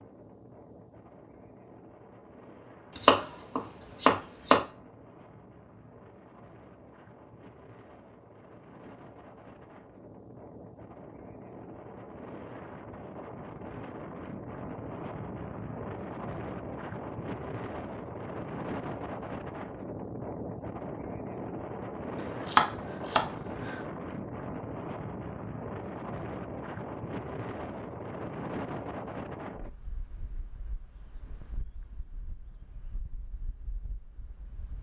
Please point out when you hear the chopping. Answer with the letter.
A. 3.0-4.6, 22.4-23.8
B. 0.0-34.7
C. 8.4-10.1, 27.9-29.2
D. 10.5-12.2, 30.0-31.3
A.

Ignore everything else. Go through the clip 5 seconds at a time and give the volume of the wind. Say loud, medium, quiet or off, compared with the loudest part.
quiet, quiet, medium, loud, loud, loud, quiet.